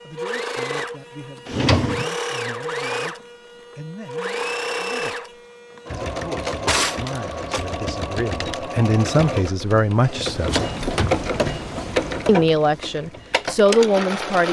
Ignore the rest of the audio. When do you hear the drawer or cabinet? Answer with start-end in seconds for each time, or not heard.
1.4-2.0, 6.1-7.8, 10.2-11.2.